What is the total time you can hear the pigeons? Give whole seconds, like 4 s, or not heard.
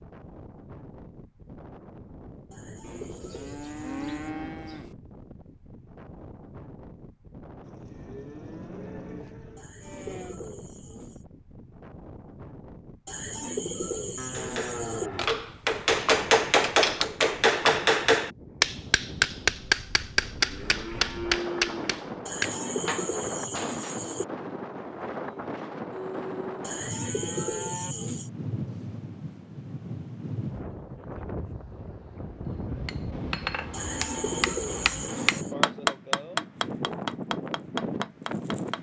11 s.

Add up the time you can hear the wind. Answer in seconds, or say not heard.
39 s.